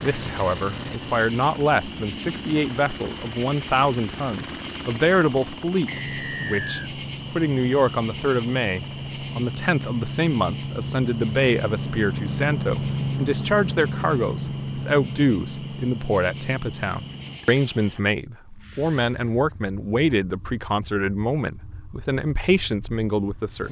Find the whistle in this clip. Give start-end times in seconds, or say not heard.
5.8-6.9.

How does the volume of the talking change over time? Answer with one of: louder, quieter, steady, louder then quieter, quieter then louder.
steady.